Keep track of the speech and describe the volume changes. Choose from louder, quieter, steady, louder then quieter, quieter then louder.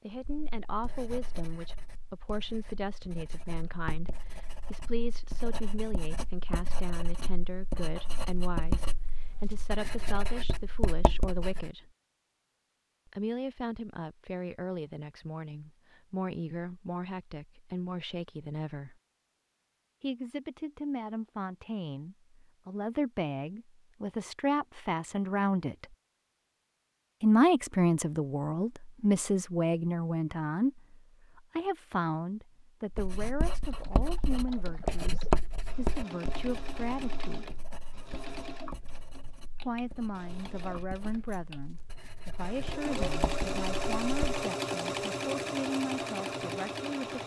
louder then quieter.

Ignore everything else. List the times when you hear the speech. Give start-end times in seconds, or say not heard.
0.0-11.9, 13.1-18.9, 20.0-25.9, 27.2-37.5, 39.6-47.2.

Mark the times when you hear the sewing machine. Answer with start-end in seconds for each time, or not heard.
33.7-47.2.